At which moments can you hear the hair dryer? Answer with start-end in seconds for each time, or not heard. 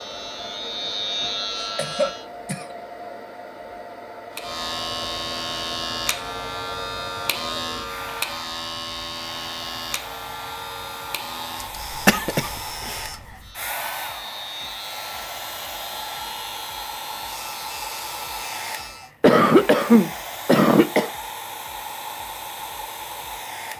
0.0-23.7.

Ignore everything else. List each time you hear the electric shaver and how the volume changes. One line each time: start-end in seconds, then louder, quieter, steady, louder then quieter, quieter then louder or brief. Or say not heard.
0.0-2.2 brief
4.3-19.1 quieter.